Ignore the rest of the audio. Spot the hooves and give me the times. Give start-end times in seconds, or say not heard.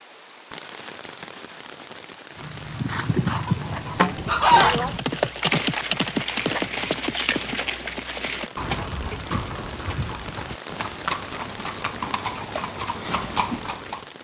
2.4-14.1.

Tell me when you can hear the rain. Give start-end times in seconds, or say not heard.
0.0-14.1.